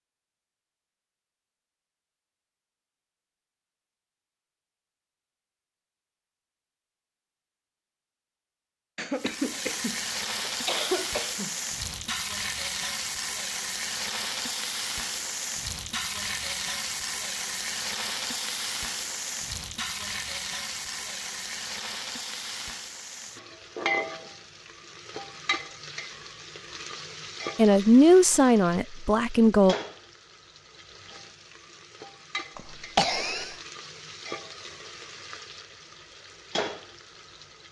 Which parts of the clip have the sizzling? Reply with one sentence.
The sizzling can be heard from 9.2 to 37.6 s.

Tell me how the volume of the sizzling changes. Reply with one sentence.
The volume of the sizzling goes down.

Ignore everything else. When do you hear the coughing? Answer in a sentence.
You can hear the coughing from 8.9 to 11.6 s and from 32.5 to 33.5 s.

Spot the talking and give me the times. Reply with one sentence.
You can hear the talking from 27.6 to 29.8 s.